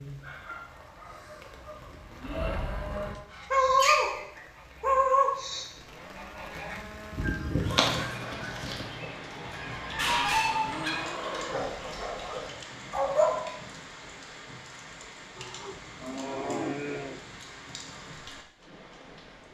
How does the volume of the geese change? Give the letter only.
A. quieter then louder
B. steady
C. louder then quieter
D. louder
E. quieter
C.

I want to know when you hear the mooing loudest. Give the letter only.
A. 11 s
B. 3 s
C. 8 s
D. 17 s
D.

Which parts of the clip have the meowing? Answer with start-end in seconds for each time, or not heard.
not heard.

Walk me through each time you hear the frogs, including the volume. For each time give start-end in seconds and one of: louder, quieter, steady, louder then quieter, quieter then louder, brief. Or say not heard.
not heard.